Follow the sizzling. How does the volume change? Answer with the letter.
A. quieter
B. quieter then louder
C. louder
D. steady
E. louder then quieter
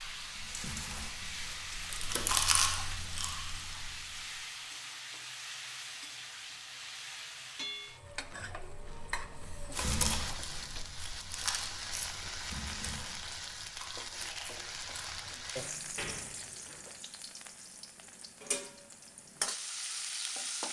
D.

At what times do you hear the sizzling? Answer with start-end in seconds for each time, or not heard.
0.0-20.6.